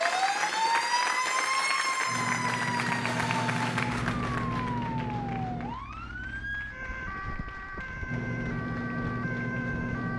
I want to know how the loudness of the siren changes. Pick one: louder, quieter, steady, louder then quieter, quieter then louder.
quieter.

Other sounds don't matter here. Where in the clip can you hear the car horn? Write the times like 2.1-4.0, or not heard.
not heard.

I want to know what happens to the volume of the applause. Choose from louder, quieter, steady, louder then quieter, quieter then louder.
quieter.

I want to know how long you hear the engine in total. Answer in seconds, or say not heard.
6 s.